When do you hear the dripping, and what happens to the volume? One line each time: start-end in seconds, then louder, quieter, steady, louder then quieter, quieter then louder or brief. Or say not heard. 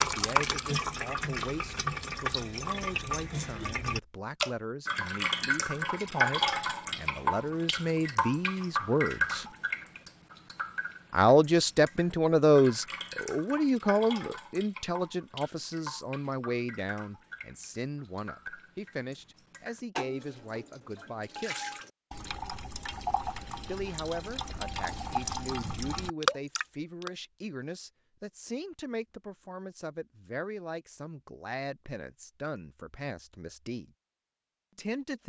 0.0-27.1 quieter then louder.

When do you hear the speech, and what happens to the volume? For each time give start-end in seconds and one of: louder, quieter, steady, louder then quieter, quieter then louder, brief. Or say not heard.
0.0-9.4 louder
11.1-21.8 quieter
23.6-33.9 steady
34.8-35.2 brief.